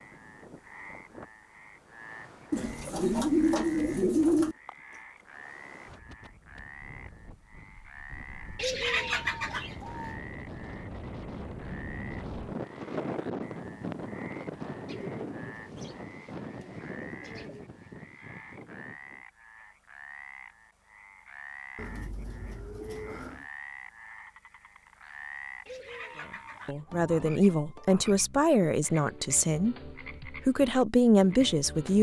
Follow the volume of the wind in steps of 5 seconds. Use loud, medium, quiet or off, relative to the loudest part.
quiet, quiet, loud, medium, off, off, off.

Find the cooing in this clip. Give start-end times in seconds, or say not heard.
2.5-4.5, 8.6-10.2, 14.8-17.6, 21.8-23.4, 25.6-27.0.